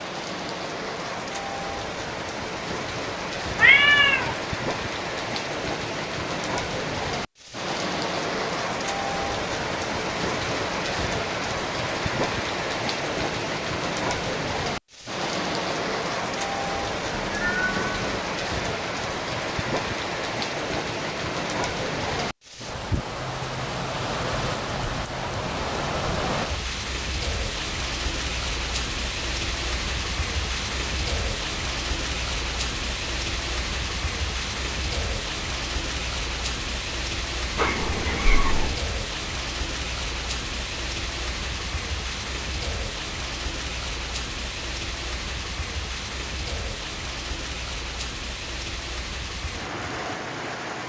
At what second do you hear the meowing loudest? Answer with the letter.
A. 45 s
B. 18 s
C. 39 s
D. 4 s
D.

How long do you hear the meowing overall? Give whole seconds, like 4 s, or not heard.
3 s.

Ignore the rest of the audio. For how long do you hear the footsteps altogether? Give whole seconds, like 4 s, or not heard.
not heard.